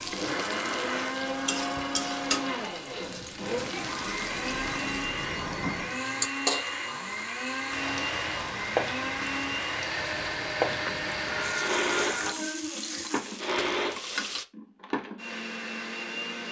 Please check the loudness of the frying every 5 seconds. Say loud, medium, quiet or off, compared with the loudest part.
loud, loud, loud, off.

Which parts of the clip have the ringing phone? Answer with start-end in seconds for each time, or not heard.
4.0-5.9, 10.7-12.3.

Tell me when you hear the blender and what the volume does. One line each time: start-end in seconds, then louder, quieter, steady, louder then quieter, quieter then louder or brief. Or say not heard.
0.1-16.4 steady.